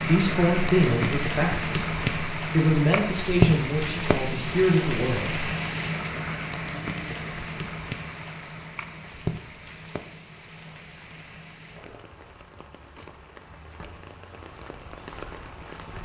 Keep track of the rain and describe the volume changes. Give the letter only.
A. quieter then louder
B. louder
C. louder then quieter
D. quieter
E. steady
D.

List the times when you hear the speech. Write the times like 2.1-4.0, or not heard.
0.0-5.5.